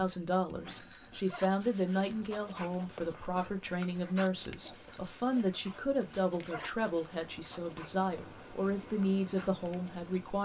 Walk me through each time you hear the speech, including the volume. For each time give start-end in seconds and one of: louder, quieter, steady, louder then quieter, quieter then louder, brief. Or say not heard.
0.0-10.4 steady.